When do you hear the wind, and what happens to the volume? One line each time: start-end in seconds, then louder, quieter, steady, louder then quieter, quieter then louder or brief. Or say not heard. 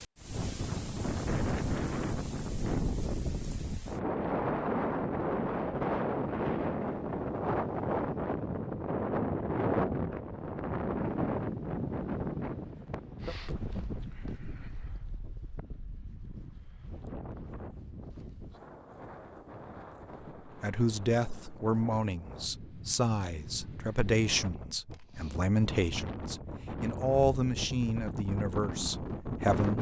0.0-29.7 quieter then louder.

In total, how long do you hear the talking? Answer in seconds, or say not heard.
9 s.